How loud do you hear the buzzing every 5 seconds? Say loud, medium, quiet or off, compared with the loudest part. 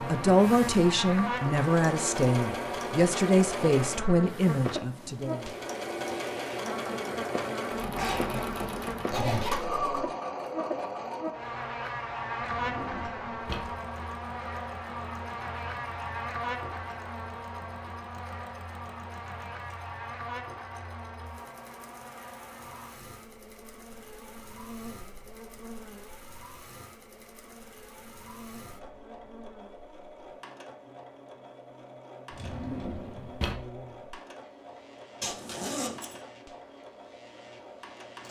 loud, loud, loud, loud, medium, quiet, quiet, quiet.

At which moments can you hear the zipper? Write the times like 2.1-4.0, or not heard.
8.0-9.6, 35.2-36.2.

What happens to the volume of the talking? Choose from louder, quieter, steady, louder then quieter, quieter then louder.
steady.